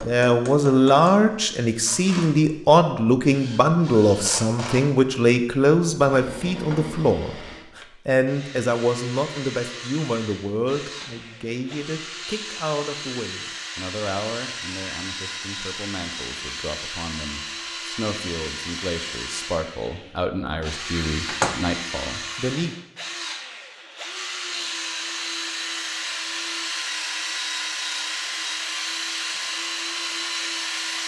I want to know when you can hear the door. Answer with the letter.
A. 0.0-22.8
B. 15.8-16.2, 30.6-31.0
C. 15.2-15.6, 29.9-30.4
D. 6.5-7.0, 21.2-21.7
D.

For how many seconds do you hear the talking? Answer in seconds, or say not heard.
23 s.